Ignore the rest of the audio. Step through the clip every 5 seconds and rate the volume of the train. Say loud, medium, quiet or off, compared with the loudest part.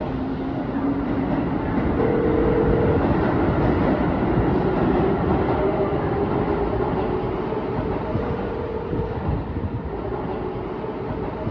loud, loud, medium.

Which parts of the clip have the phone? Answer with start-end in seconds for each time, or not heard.
1.9-3.0, 8.2-9.2.